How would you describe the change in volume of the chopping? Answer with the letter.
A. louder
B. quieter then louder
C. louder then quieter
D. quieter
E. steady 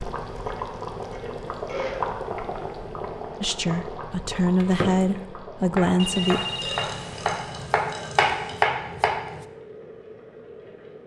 A.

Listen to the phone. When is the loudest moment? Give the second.
6 s.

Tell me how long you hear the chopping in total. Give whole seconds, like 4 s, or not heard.
5 s.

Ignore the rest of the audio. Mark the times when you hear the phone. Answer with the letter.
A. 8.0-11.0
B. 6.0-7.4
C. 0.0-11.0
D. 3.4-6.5
B.